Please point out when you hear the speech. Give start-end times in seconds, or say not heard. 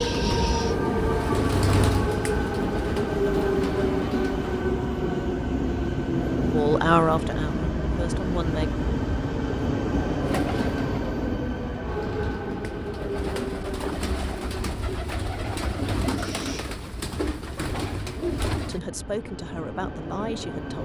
6.5-8.7, 18.6-20.8.